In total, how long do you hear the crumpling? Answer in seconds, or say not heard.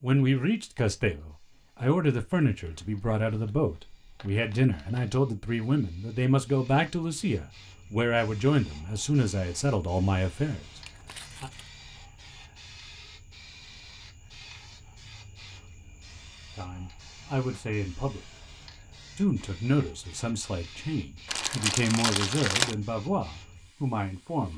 5 s.